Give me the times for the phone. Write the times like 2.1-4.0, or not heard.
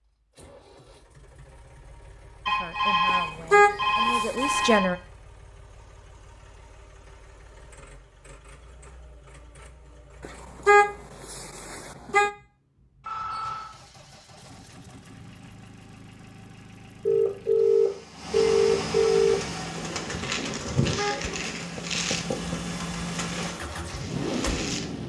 2.5-4.9, 13.0-13.7, 17.1-19.6.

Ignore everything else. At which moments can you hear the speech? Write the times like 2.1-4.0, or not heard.
2.5-5.0.